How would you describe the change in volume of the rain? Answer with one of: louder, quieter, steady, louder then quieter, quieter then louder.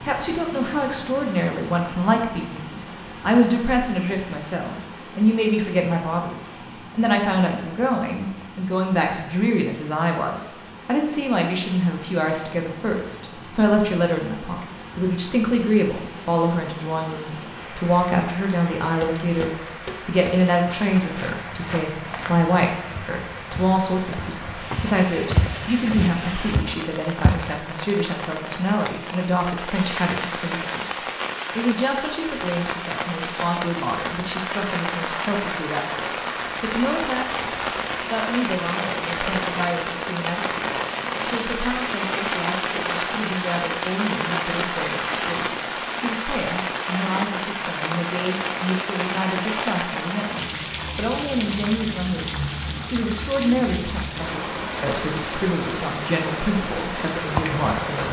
louder.